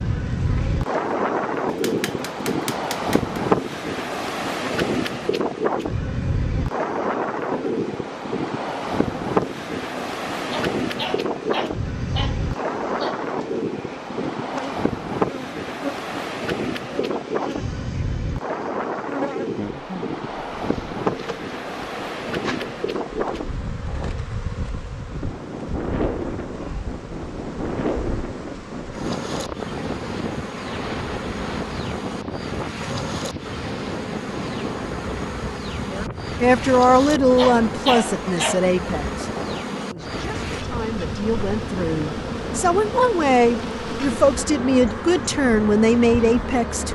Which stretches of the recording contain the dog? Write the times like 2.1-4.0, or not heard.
10.3-13.2, 37.2-38.8.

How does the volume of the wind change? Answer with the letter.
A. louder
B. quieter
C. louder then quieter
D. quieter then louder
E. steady
B.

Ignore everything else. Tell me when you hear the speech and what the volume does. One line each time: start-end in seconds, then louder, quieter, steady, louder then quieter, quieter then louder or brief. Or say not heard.
35.9-46.9 quieter then louder.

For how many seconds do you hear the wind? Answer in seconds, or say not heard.
47 s.